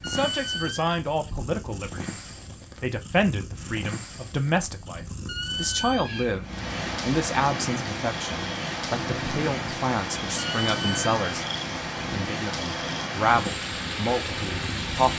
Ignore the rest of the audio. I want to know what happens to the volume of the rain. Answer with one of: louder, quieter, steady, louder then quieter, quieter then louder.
steady.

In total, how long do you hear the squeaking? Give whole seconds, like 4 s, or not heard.
3 s.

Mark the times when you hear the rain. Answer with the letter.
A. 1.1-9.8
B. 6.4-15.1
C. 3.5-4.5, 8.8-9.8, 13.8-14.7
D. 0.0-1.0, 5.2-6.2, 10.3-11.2
B.